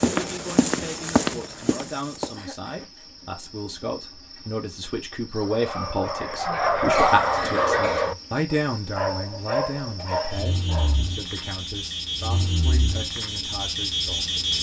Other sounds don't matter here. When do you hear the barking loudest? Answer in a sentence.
The loudest moment of the barking is at 7 seconds.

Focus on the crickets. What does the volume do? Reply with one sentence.
The volume of the crickets goes up.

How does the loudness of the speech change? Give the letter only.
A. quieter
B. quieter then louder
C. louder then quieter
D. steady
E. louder
C.